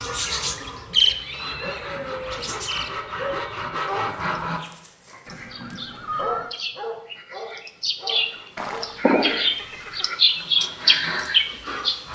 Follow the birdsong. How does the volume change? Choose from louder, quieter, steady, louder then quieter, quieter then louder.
quieter then louder.